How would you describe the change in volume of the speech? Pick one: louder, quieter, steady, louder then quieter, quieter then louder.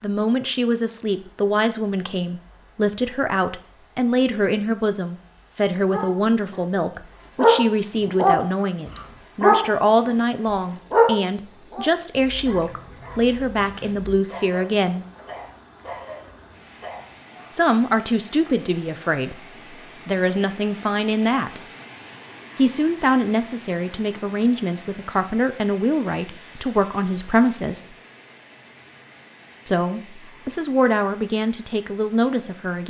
steady.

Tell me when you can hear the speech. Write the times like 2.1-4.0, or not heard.
0.0-15.1, 17.5-21.6, 22.6-27.9, 29.6-32.8.